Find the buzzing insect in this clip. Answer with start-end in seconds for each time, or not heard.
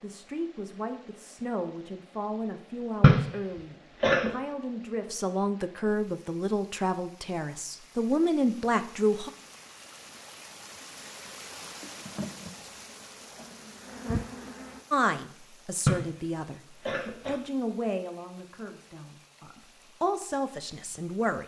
11.6-14.8.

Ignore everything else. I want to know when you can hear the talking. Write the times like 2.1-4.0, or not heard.
0.0-9.3, 14.9-16.6, 17.2-21.4.